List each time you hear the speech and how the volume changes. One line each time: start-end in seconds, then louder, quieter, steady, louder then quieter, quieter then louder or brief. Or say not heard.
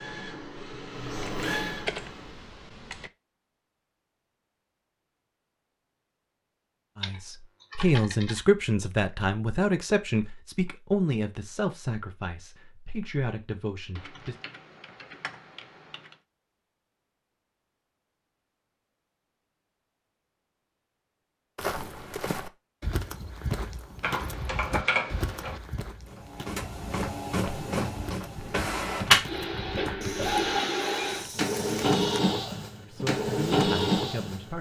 7.0-14.3 quieter
32.8-34.5 brief.